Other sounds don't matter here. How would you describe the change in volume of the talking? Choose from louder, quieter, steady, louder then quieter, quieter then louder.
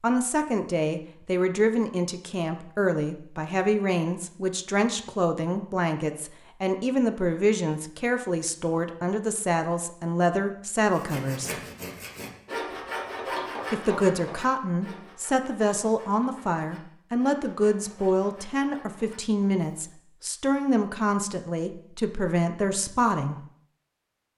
steady.